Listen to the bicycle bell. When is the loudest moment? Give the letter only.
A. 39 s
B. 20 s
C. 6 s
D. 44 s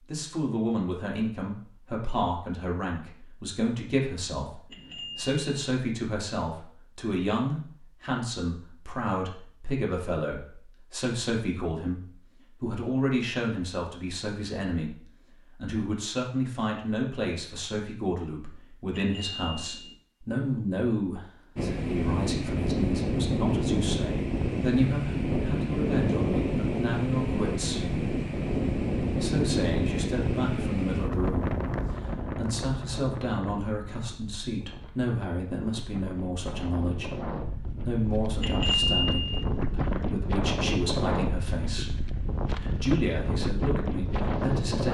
A.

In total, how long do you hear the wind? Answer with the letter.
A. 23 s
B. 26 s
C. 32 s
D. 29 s
A.